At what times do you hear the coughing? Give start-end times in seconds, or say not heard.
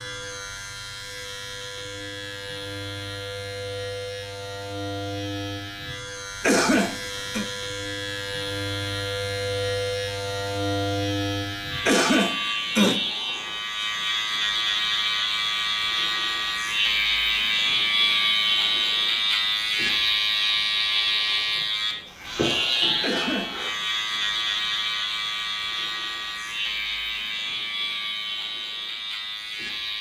6.4-7.5, 11.8-13.1, 23.0-23.6.